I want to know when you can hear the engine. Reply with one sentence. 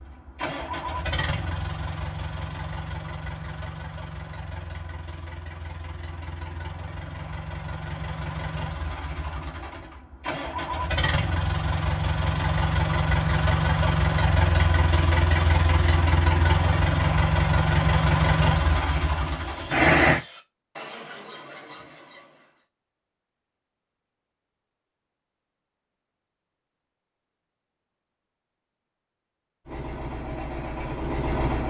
The engine can be heard from 0.0 to 20.2 s and from 29.6 to 31.6 s.